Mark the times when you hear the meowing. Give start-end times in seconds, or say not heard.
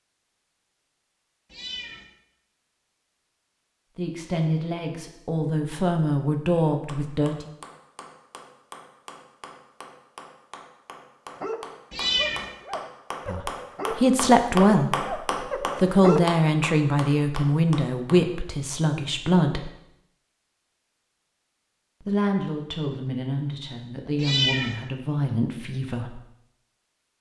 1.5-2.0, 11.9-12.4, 24.1-24.8.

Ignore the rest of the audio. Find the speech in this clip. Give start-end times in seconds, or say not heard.
4.0-7.5, 13.2-19.7, 22.0-26.2.